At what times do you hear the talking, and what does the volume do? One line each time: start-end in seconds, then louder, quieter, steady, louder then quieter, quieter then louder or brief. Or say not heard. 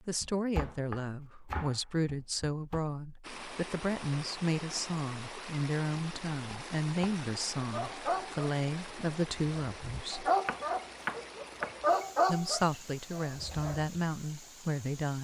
0.1-10.3 steady
12.2-15.1 brief.